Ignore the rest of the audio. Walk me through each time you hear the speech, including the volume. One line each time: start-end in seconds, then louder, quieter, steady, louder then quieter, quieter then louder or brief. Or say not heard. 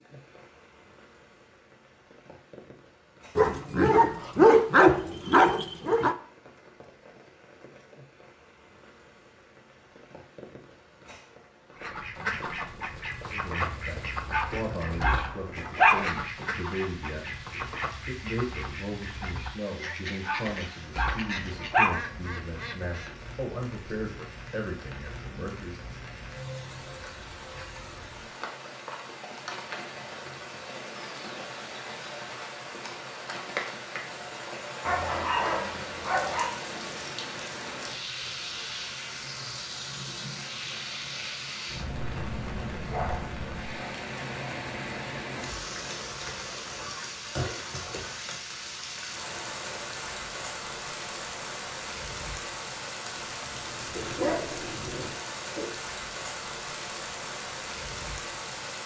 13.2-25.8 steady.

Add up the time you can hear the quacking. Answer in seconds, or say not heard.
11 s.